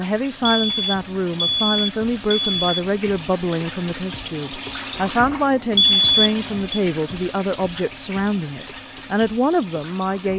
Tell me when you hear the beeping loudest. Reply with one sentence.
The volume of the beeping peaks at 6 seconds.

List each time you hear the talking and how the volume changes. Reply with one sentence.
The talking can be heard from 0.0 to 10.3 s, at a steady volume.